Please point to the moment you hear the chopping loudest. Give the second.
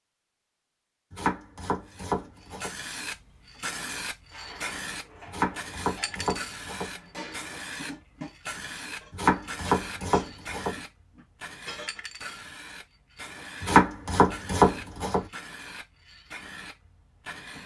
14 s.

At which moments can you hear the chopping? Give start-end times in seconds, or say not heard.
1.1-2.7, 5.2-6.9, 9.1-10.8, 13.6-15.2.